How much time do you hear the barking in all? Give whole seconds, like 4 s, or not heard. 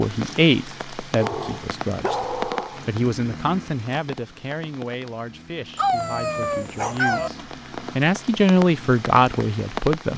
3 s.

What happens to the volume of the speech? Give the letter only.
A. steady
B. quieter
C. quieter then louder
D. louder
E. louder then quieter
C.